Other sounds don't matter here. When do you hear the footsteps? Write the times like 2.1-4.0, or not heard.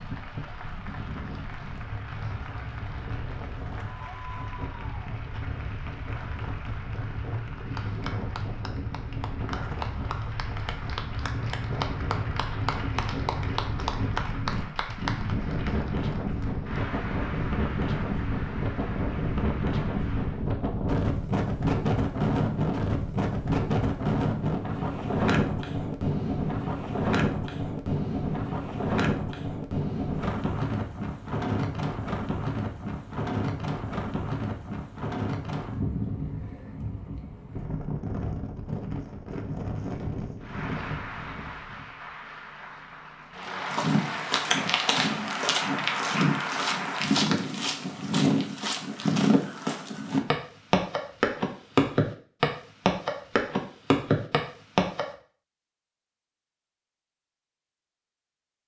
43.7-55.0.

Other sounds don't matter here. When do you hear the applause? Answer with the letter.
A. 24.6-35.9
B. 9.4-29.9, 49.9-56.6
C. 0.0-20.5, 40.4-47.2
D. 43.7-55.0
C.